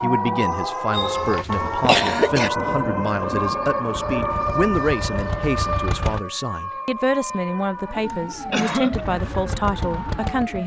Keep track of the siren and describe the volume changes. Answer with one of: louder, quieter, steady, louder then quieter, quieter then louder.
quieter.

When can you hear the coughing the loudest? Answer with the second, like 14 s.
2 s.